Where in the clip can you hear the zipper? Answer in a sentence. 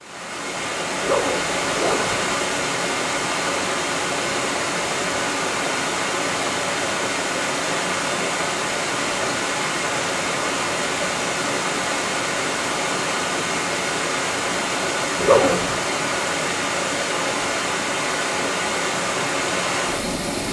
The zipper can be heard from 1.0 to 2.4 s and from 15.2 to 15.8 s.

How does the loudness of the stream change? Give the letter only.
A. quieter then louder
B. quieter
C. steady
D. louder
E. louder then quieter
C.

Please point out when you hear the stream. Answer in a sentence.
You can hear the stream from 0.0 to 20.4 s.